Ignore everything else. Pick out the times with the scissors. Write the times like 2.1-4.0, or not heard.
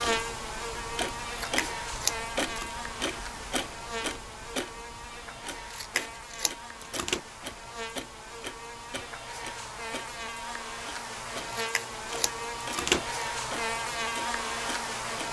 1.4-2.7, 5.7-7.2, 11.6-13.3.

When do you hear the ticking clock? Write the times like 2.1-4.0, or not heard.
0.0-15.2.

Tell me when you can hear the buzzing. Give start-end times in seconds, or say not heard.
0.0-15.2.